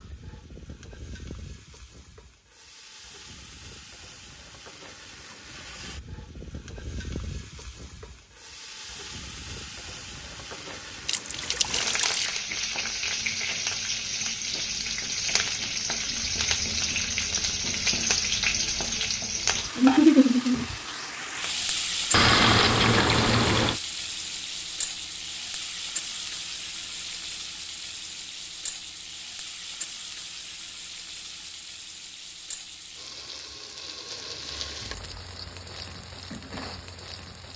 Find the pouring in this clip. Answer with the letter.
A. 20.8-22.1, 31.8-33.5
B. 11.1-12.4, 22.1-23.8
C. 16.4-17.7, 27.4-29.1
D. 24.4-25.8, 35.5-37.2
B.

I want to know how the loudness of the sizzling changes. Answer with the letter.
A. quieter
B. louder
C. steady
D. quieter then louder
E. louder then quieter
E.